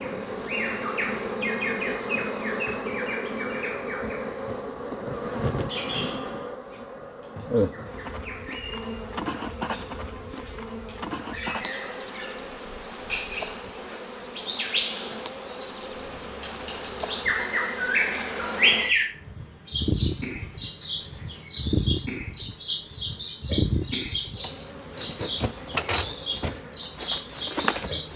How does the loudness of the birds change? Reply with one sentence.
The loudness of the birds goes down, then up.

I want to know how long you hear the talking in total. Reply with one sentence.
The talking can't be heard in this clip.